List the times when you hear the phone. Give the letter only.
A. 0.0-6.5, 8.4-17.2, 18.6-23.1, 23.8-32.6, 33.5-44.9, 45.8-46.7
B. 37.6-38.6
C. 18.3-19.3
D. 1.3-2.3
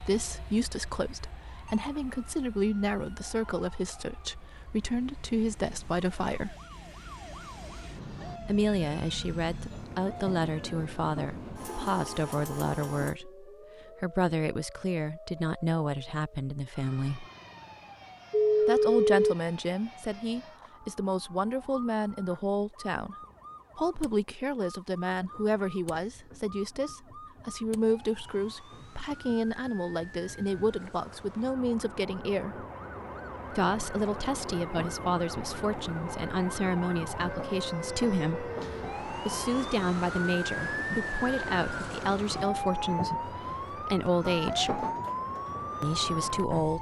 C.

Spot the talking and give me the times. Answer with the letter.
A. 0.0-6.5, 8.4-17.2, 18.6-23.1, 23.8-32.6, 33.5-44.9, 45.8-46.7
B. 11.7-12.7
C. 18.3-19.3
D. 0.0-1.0
A.